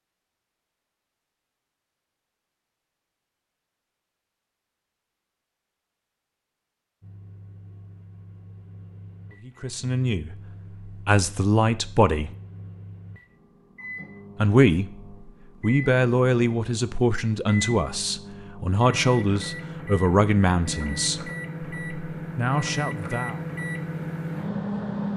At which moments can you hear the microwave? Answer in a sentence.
You can hear the microwave from 7.0 to 25.1 s.